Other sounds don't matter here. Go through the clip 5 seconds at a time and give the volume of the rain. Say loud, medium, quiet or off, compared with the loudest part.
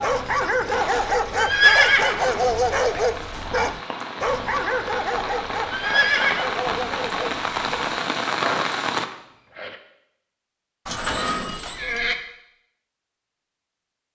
medium, loud, off.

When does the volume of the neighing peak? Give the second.
2 s.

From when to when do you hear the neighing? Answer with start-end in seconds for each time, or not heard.
1.4-3.0, 5.7-6.7, 10.8-12.2.